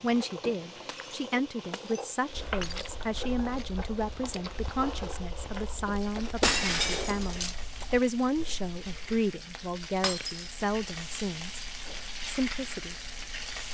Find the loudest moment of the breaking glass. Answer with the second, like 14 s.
7 s.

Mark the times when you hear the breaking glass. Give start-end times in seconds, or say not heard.
0.8-2.9, 6.4-7.5, 10.0-10.4.